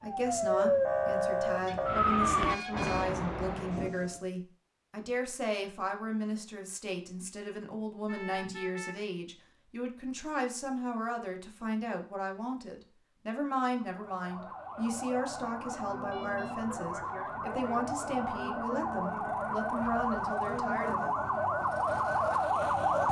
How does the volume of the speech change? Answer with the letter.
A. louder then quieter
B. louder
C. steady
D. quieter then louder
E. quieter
C.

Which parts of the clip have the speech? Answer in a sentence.
The speech can be heard from 0.0 to 21.1 s.